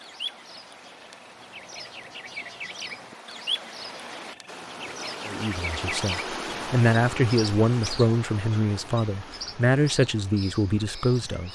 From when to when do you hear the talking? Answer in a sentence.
You can hear the talking from 5.2 to 11.4 s.